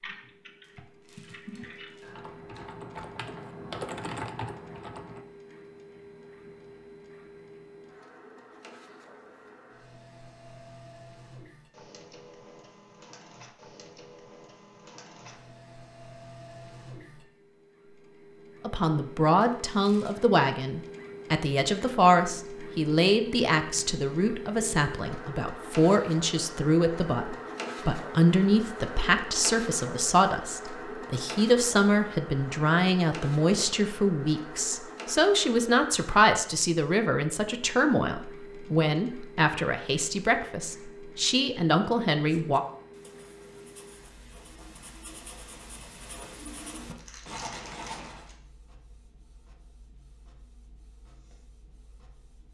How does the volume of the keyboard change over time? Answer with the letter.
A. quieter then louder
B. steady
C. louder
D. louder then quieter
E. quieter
C.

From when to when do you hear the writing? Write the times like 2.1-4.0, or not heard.
42.2-48.3.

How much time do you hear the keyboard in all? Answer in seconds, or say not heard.
5 s.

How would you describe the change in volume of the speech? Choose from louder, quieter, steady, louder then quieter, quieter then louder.
steady.